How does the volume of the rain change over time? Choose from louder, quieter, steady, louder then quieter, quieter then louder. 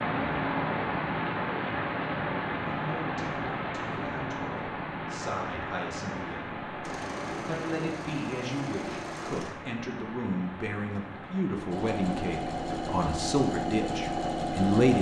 quieter.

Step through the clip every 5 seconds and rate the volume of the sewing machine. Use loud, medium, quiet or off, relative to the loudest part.
off, medium, loud.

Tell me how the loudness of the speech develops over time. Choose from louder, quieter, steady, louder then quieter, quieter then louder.
louder.